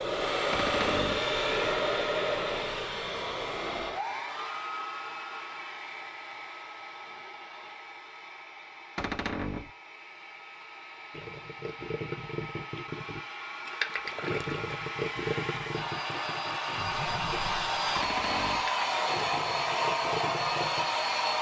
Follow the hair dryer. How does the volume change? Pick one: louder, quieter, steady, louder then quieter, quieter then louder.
quieter then louder.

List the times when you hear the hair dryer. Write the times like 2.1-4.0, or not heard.
0.0-21.3.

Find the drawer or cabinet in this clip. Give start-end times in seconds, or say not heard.
0.5-1.2, 8.9-9.7, 17.9-18.7.